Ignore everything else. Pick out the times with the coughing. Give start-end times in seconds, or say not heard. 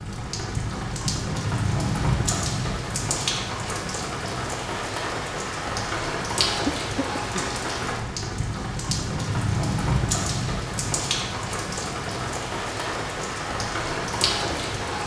6.7-7.5.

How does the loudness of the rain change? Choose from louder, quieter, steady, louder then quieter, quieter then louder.
steady.